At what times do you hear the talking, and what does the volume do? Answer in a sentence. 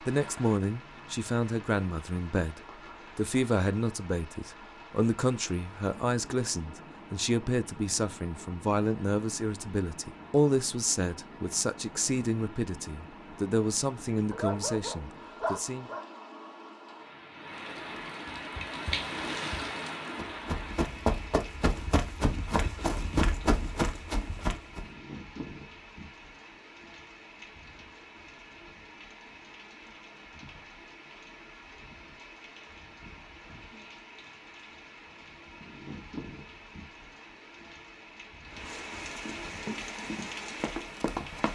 The talking can be heard from 0.0 to 15.9 s, at a steady volume.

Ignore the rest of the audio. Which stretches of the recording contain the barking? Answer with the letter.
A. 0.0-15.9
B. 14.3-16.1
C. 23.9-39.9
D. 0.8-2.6
B.